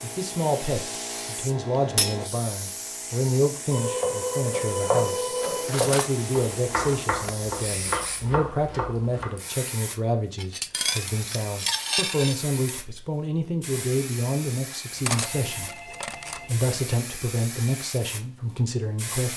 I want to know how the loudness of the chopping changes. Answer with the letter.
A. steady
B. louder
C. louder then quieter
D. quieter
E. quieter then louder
D.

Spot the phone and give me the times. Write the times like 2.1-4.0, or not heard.
3.7-5.7, 14.9-16.7.